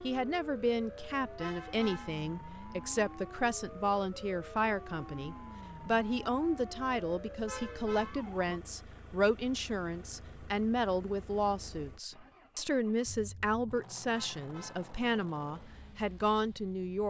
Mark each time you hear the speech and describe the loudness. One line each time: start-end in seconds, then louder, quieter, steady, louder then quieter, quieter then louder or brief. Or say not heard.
0.0-17.0 steady.